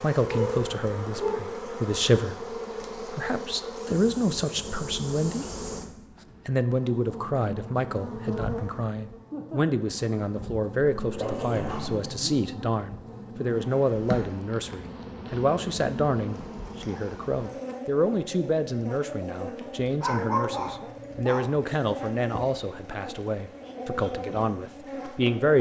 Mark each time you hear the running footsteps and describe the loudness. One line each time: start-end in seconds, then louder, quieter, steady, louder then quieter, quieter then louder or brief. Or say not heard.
not heard.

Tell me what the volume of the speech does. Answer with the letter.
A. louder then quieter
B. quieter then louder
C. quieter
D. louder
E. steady
E.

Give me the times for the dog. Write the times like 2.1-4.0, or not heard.
0.2-1.4, 11.0-12.2, 20.0-21.6.